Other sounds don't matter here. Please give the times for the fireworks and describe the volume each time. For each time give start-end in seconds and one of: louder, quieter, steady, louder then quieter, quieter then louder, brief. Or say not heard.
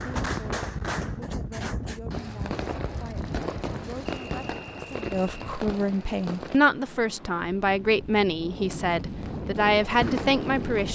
0.0-6.6 steady
8.5-10.8 brief.